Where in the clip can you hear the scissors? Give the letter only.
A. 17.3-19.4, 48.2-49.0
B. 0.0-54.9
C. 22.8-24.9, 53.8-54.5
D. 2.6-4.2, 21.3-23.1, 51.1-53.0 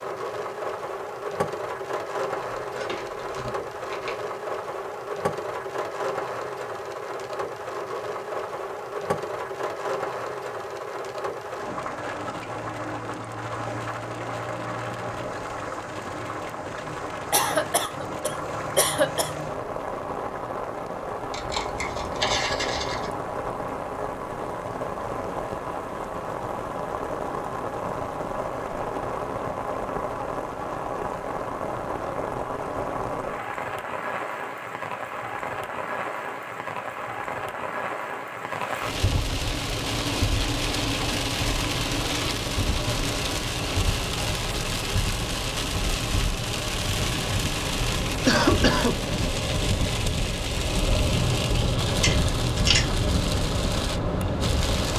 D.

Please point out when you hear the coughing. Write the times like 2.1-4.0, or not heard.
17.3-19.4, 48.2-49.0.